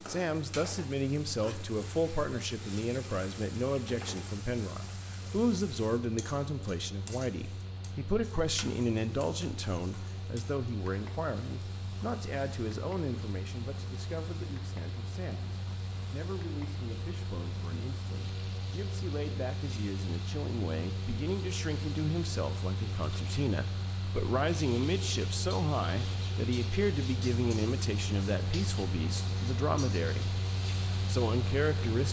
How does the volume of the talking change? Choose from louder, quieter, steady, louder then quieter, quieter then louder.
quieter then louder.